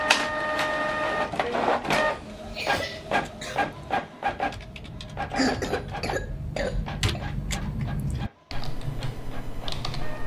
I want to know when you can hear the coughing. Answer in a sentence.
You can hear the coughing from 2.1 to 3.6 s and from 5.3 to 7.2 s.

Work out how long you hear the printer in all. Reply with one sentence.
You can hear the printer for 10 seconds altogether.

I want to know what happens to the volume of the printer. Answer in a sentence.
The volume of the printer goes down.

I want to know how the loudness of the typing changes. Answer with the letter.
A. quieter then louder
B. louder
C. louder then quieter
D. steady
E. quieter
B.